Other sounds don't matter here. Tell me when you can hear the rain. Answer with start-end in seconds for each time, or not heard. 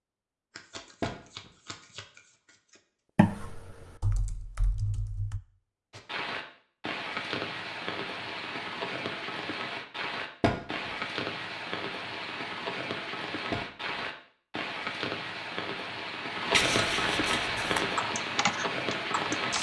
5.9-19.5.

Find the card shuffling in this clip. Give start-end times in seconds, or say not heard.
0.5-2.8, 16.5-17.9.